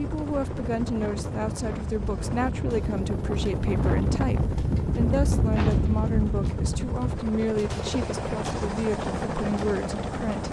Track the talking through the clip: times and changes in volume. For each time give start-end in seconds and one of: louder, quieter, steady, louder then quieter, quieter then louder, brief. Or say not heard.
0.0-10.4 steady.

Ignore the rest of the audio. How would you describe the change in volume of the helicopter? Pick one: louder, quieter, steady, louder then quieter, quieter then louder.
louder.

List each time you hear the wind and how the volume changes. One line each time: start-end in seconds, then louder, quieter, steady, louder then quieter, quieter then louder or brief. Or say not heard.
0.0-7.2 louder.